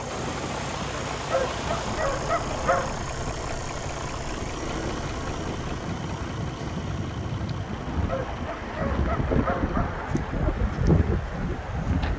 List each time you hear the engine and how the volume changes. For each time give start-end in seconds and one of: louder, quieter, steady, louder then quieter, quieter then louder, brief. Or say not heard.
0.0-12.1 quieter.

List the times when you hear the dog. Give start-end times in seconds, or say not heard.
1.3-3.0, 8.1-9.9.